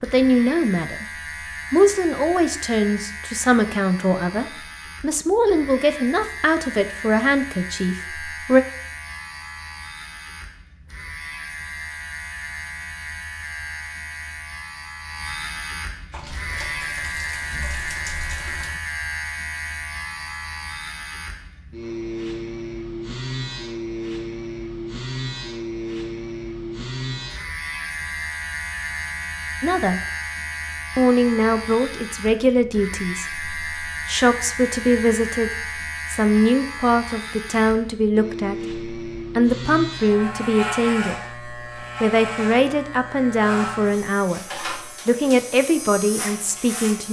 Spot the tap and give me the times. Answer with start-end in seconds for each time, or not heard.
16.1-18.8.